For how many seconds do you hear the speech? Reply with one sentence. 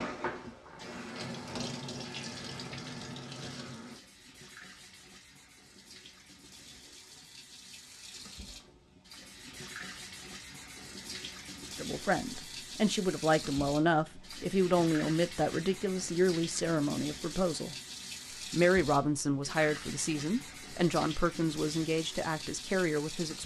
The speech can be heard for 11 seconds in total.